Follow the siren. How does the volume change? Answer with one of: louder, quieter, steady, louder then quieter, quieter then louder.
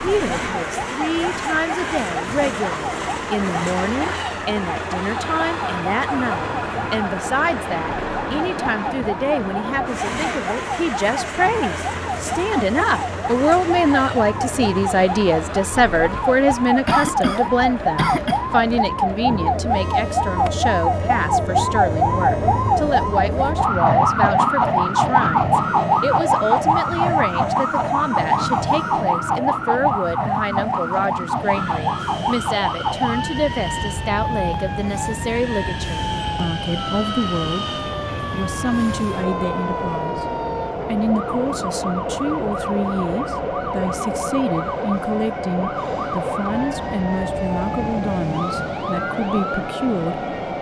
louder then quieter.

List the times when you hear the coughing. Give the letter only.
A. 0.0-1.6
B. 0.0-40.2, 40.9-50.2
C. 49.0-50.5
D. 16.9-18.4
D.